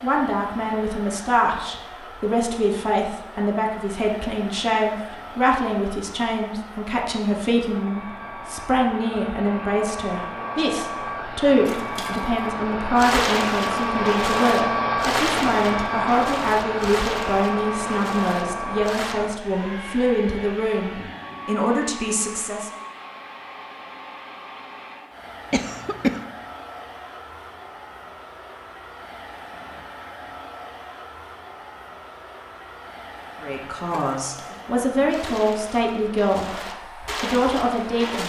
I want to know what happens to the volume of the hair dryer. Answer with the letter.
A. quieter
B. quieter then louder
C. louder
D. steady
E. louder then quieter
E.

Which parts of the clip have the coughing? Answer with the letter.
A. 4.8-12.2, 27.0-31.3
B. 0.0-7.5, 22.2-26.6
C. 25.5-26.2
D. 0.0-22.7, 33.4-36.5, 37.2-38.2
C.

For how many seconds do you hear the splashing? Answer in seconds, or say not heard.
12 s.